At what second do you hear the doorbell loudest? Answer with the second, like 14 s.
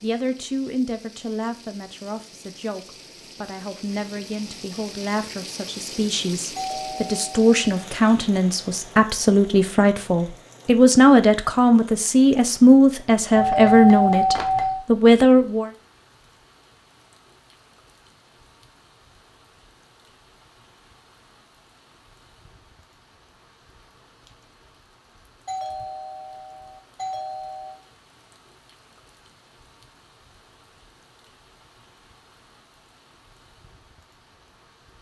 14 s.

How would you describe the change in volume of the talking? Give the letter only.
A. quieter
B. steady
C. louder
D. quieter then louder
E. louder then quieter
C.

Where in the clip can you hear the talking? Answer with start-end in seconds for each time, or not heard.
0.0-15.7.